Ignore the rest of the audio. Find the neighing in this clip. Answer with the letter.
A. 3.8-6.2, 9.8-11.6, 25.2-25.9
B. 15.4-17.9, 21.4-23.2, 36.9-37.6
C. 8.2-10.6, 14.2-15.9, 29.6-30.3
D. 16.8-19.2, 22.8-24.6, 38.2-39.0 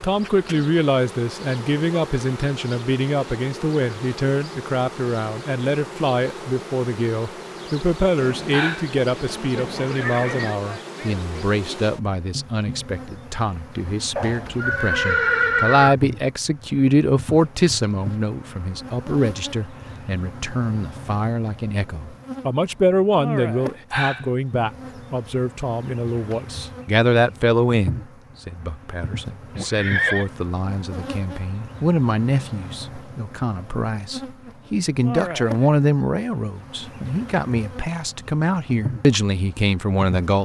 C.